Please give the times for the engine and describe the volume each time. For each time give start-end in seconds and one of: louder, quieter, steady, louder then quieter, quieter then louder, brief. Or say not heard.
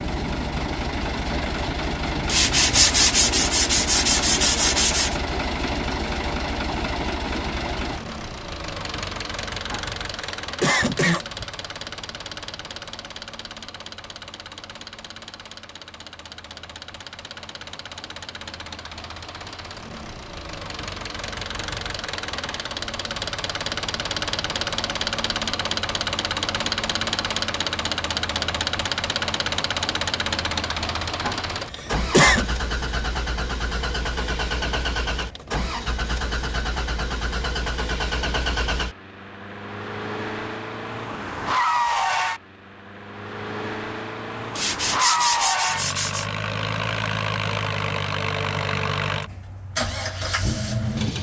0.0-51.1 quieter then louder.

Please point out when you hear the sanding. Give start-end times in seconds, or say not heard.
2.2-5.2, 44.5-46.3.